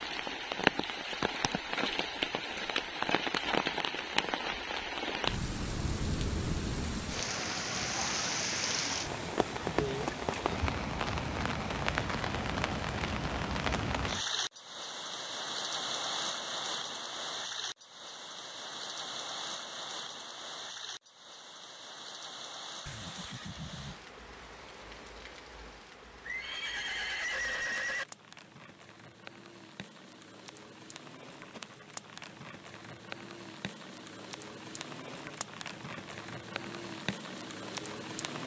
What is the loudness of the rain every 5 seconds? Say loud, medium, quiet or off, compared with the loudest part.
loud, loud, loud, medium, quiet, quiet, quiet, medium.